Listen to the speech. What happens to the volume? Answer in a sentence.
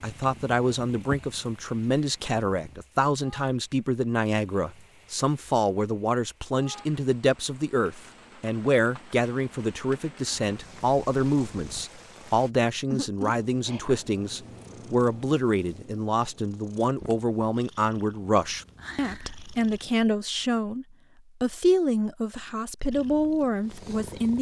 The volume of the speech stays about the same.